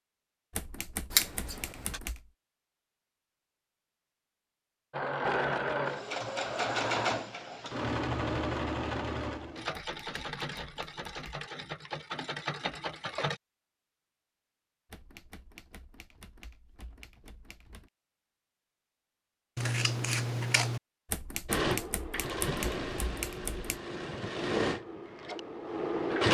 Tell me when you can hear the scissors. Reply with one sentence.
You can hear the scissors from 1.1 to 2.0 s and from 19.6 to 20.8 s.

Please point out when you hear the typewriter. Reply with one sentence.
You can hear the typewriter from 0.5 to 2.3 s, from 9.7 to 11.3 s, from 14.9 to 17.9 s and from 21.1 to 23.8 s.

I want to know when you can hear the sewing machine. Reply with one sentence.
You can hear the sewing machine from 4.9 to 13.4 s and from 21.4 to 26.2 s.